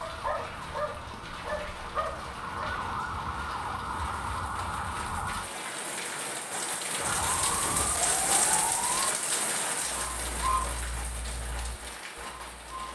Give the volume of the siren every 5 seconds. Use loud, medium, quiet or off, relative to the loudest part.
loud, loud, off.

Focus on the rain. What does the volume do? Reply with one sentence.
The volume of the rain goes up, then down.